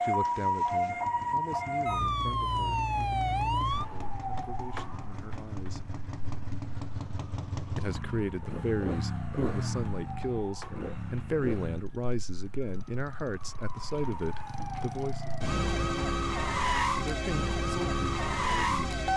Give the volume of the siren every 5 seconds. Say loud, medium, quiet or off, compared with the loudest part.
loud, quiet, quiet, loud.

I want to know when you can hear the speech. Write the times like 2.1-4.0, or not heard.
0.0-5.8, 7.8-15.3, 16.9-19.0.